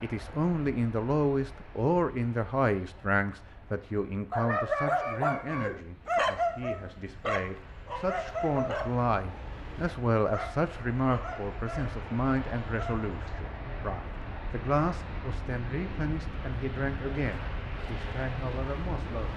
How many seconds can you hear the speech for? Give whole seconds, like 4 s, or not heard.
19 s.